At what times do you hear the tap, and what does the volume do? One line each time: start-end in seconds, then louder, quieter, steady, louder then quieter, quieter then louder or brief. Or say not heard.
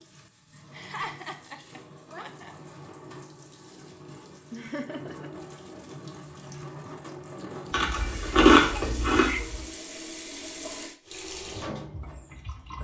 0.0-12.7 louder.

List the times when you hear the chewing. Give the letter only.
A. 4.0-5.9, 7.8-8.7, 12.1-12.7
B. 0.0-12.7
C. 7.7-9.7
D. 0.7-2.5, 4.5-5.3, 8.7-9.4
C.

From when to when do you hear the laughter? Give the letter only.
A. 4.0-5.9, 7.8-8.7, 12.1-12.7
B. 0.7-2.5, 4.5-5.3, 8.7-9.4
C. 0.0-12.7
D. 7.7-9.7
B.